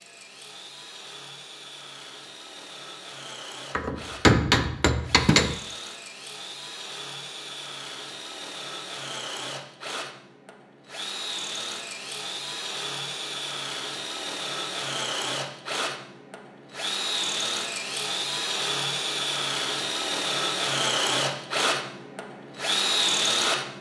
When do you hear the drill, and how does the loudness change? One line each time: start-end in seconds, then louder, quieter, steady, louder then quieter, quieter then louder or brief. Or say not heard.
0.0-23.7 louder.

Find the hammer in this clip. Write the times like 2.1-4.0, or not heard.
3.7-5.6.